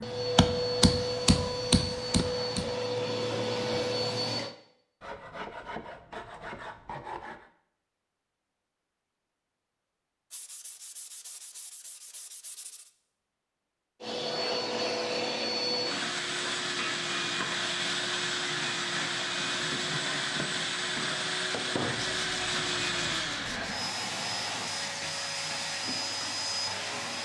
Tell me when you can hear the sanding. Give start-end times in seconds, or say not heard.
5.0-7.5, 10.3-12.9, 21.9-23.9.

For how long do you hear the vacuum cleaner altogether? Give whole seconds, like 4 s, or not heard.
18 s.